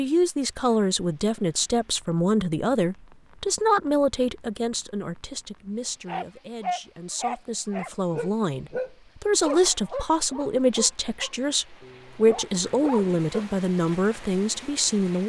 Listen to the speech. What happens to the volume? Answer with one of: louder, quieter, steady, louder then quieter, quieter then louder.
quieter then louder.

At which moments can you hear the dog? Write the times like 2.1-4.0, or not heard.
6.0-13.4.